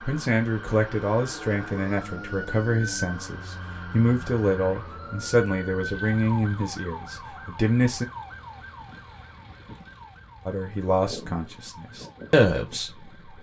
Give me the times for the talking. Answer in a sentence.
The talking can be heard from 0.0 to 8.1 s and from 10.4 to 13.1 s.